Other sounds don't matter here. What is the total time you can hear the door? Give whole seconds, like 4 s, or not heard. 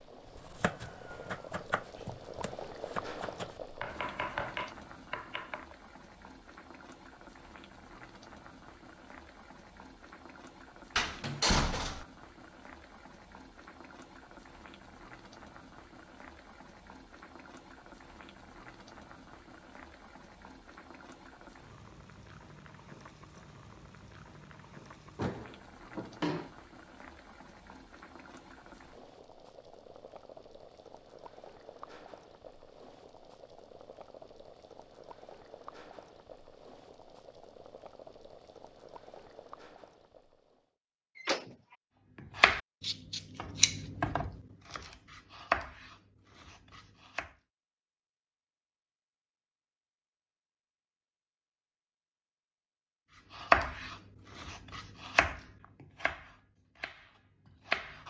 3 s.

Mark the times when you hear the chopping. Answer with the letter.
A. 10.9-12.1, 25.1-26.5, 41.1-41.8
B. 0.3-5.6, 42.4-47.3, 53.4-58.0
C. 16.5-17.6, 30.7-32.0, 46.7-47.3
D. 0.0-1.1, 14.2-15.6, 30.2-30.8
B.